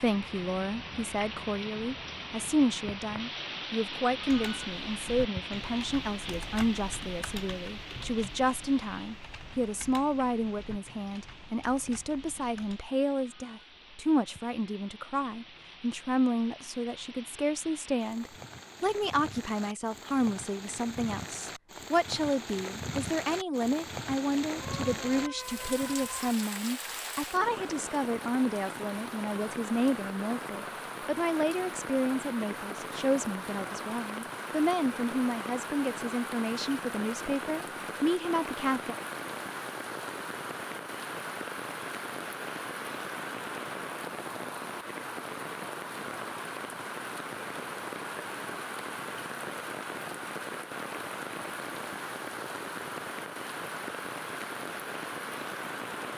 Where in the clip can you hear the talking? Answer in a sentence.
You can hear the talking from 0.0 to 39.0 s.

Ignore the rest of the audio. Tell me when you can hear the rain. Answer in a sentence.
You can hear the rain from 0.0 to 56.1 s.